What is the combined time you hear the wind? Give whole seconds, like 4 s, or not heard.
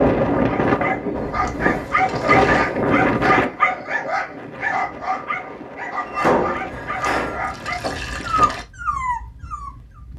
10 s.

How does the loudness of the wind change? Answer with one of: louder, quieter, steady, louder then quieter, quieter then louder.
quieter.